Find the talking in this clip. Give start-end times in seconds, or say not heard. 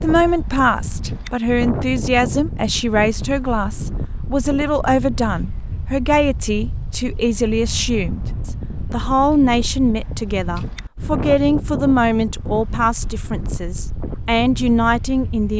0.0-15.5.